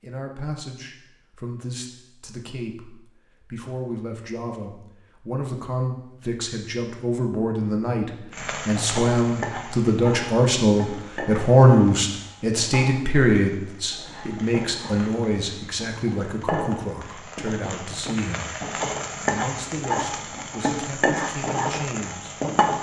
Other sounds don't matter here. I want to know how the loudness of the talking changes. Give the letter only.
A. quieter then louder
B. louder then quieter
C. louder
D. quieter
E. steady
B.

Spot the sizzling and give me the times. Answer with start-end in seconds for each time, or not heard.
8.3-22.7.